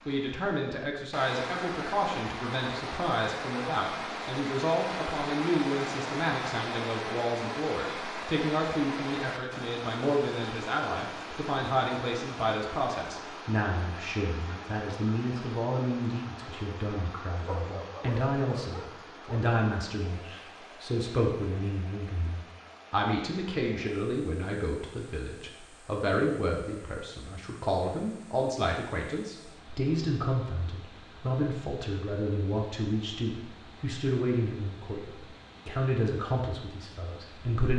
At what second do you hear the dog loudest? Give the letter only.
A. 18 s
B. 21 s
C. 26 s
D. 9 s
A.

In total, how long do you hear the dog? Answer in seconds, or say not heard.
2 s.